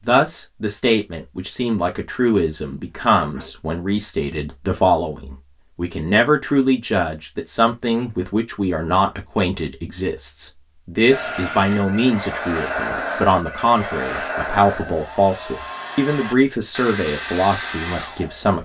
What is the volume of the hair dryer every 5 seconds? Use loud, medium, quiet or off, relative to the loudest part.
off, off, loud, loud.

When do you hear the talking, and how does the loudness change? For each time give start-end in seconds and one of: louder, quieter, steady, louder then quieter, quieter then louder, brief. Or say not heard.
0.1-18.6 steady.